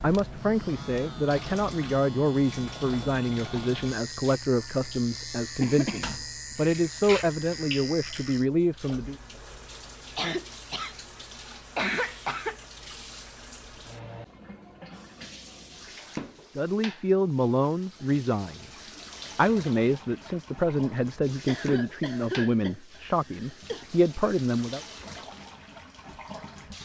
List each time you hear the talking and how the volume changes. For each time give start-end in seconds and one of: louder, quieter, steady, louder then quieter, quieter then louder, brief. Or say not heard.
0.0-9.2 steady
16.6-24.8 steady.